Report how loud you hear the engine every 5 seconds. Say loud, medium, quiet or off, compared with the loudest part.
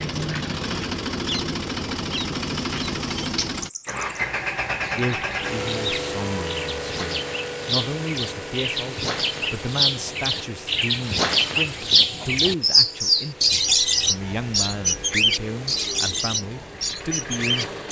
loud, loud, quiet, medium.